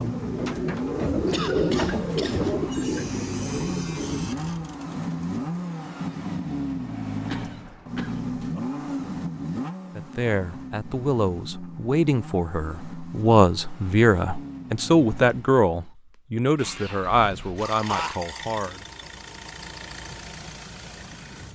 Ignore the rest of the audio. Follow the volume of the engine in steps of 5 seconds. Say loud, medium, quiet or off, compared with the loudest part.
loud, loud, medium, medium, medium.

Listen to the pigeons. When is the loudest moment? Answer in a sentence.
The volume of the pigeons peaks at 2 seconds.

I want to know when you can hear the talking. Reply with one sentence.
You can hear the talking from 9.9 to 18.9 s.